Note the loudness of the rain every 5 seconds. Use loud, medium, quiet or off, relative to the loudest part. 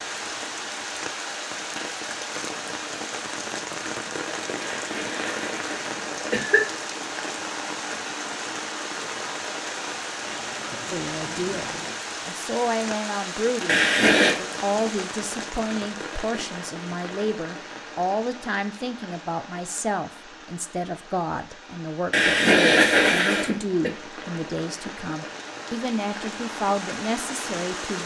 loud, loud, loud, medium, medium, loud.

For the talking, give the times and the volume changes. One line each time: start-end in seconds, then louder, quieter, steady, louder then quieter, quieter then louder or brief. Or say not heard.
10.9-28.0 steady.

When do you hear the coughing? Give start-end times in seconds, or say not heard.
4.6-6.6, 13.7-14.3, 22.1-23.9.